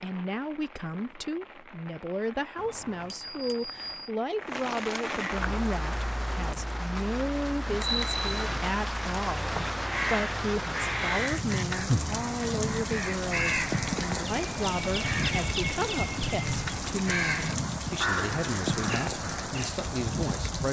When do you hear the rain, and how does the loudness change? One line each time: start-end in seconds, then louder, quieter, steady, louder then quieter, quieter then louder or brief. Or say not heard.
0.0-20.6 louder.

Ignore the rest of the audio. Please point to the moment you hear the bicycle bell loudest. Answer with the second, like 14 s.
8 s.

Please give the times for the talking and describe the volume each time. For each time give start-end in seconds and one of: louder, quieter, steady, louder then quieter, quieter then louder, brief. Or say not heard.
0.0-20.6 steady.